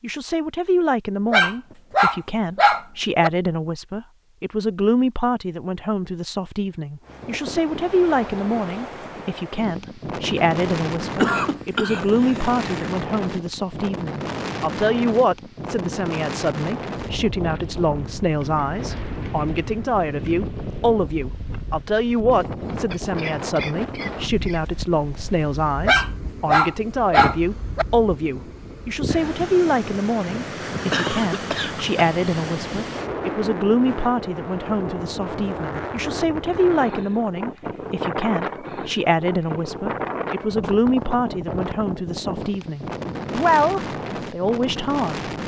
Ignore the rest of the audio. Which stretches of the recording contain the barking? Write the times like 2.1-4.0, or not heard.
1.3-3.3, 25.9-27.9.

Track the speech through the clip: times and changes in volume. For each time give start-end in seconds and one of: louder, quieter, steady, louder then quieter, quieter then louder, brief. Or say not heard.
0.0-45.2 steady.